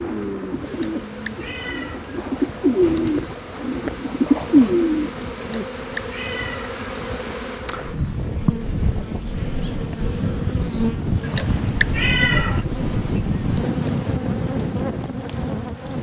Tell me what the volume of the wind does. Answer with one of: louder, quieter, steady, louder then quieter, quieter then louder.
louder.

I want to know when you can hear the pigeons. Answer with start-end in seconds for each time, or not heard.
0.0-5.7.